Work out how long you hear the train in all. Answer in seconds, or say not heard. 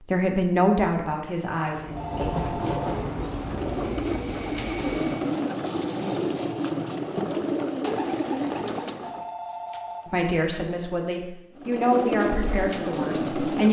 4 s.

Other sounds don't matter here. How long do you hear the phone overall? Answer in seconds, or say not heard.
2 s.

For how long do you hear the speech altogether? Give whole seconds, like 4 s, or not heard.
6 s.